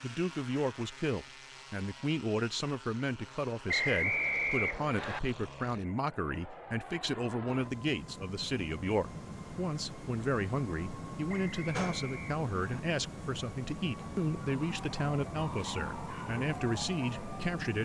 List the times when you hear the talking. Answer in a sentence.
You can hear the talking from 0.0 to 17.7 s.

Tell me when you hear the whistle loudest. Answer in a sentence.
The loudest moment of the whistle is at 4 seconds.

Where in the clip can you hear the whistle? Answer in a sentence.
You can hear the whistle from 3.6 to 5.2 s and from 11.3 to 12.8 s.